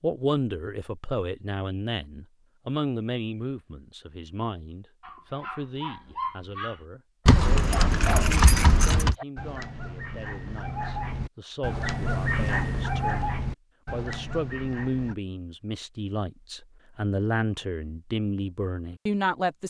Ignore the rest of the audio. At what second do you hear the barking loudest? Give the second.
12 s.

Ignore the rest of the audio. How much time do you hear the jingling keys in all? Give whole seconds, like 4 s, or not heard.
2 s.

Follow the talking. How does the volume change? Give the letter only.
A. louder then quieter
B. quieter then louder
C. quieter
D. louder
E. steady
B.